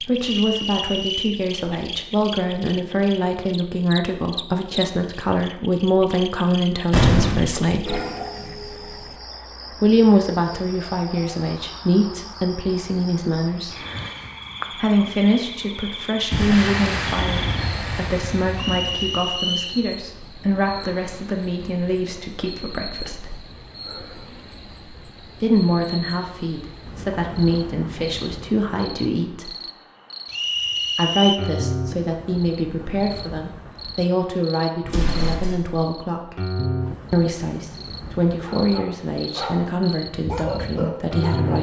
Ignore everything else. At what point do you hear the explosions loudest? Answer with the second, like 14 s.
7 s.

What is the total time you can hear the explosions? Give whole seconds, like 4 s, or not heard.
4 s.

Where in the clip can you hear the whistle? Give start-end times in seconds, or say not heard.
0.2-1.4, 18.6-19.8, 30.3-31.4.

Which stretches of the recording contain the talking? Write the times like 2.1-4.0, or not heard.
0.1-8.0, 9.8-13.8, 14.7-23.4, 25.4-29.5, 30.9-36.5, 37.1-41.5.